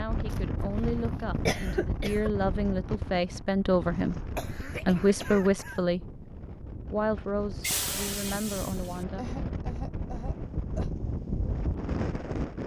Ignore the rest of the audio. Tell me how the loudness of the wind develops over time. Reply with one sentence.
The volume of the wind goes down, then up.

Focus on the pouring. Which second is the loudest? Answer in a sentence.
The volume of the pouring peaks at 8 seconds.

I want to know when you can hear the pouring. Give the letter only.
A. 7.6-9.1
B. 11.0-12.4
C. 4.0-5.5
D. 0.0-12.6
A.